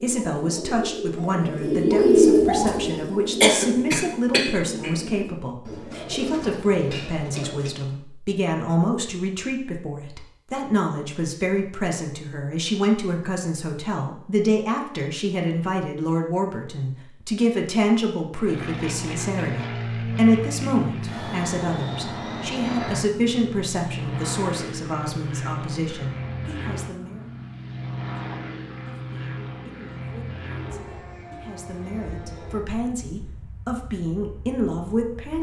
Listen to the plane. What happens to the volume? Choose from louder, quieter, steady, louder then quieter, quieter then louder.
quieter.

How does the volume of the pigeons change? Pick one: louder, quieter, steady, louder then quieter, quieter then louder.
louder then quieter.